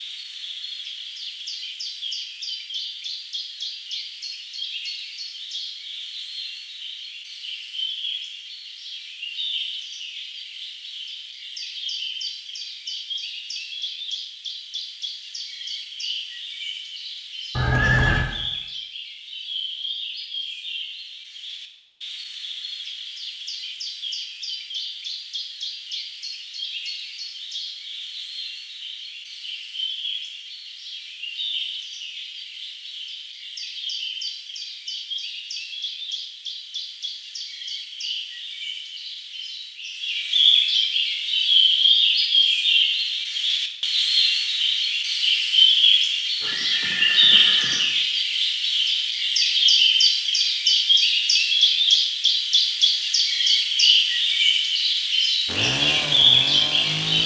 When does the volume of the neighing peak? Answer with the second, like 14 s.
18 s.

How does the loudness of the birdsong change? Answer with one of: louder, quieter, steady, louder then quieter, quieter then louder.
louder.